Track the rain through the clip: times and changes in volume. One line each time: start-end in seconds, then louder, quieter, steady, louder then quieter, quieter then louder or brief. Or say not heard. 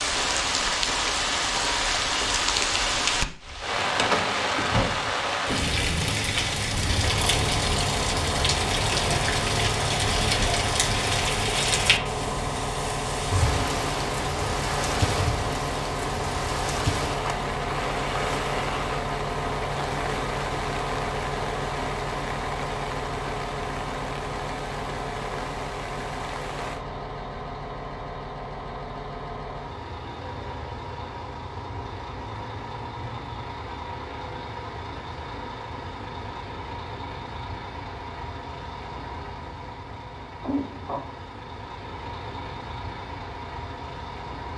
0.0-26.9 quieter.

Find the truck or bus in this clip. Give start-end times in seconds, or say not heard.
7.0-44.5.